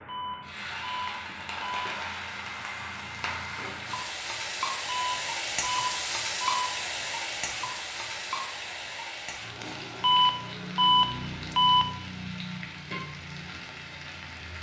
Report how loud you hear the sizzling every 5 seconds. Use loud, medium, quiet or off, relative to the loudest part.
loud, loud, medium.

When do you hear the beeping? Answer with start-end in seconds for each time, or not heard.
0.1-1.9, 4.8-6.7, 10.0-11.8.